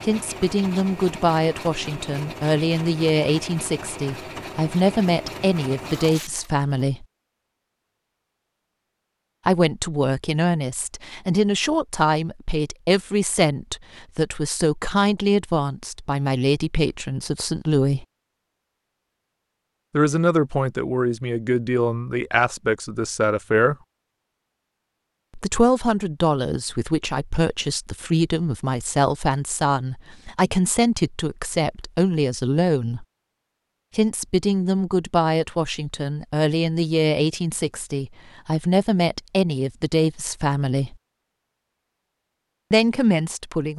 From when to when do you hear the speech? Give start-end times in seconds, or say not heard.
0.0-7.0, 9.4-18.1, 19.9-23.8, 25.4-33.0, 34.0-41.0, 42.7-43.7.